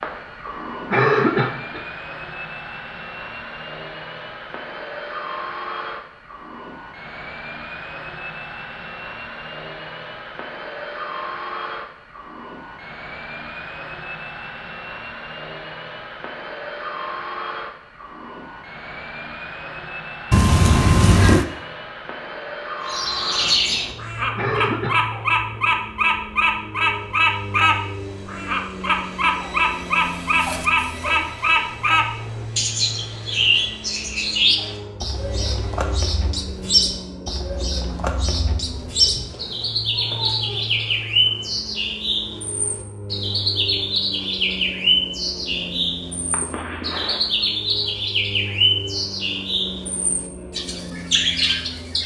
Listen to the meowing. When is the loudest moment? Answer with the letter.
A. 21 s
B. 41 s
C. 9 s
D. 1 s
A.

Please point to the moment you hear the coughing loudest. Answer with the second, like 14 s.
1 s.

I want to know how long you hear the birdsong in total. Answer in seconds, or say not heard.
29 s.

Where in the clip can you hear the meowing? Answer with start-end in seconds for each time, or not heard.
20.3-21.4, 38.6-40.6.